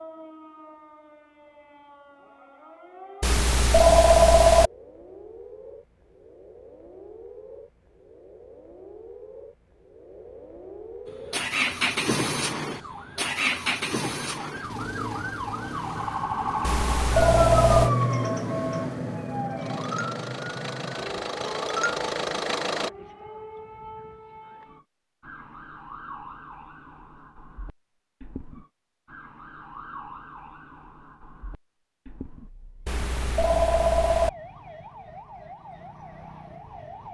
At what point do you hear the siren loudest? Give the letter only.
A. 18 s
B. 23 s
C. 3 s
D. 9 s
A.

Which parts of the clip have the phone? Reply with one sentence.
You can hear the phone from 3.2 to 4.7 s, from 16.6 to 17.9 s and from 32.9 to 34.3 s.